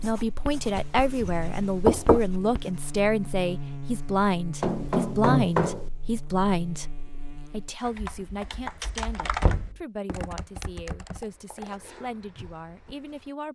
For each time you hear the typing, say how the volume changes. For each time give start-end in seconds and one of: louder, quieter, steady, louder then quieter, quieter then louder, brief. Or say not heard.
7.8-13.3 quieter.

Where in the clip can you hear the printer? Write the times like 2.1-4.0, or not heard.
not heard.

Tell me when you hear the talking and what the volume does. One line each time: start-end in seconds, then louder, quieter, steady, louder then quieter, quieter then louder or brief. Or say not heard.
0.0-13.5 quieter.